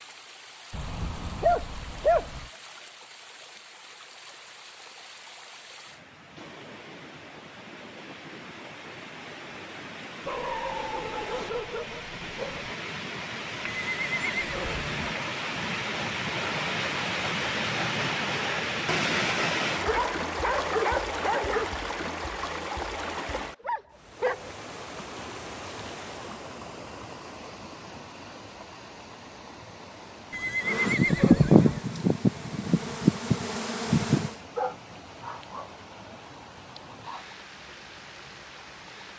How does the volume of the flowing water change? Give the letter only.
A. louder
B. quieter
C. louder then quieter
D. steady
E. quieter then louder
C.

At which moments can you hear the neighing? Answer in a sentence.
The neighing can be heard from 13.8 to 15.2 s and from 30.3 to 31.8 s.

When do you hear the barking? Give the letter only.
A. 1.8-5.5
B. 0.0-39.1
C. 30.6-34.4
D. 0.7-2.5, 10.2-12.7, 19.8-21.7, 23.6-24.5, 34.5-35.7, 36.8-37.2
D.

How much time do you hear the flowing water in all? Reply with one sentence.
You can hear the flowing water for 39 seconds altogether.